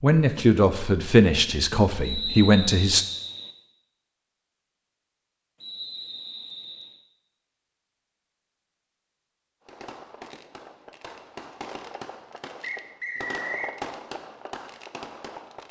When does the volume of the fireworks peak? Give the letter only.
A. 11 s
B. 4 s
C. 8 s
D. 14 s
D.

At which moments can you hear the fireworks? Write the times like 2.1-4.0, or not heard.
9.7-15.6.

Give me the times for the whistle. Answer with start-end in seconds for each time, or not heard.
2.0-3.5, 5.6-7.0, 12.6-13.8.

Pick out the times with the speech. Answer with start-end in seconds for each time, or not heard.
0.0-3.0.